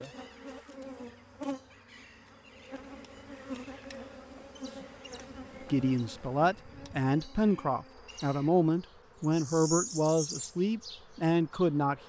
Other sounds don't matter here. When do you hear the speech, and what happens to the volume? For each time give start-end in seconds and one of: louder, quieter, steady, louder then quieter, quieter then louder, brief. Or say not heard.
5.7-12.0 steady.